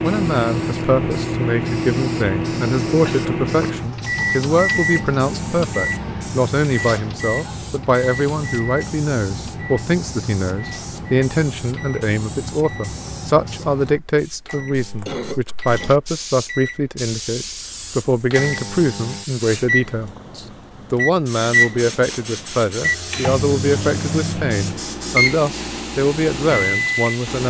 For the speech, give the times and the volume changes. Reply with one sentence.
You can hear the speech from 0.0 to 27.4 s, at a steady volume.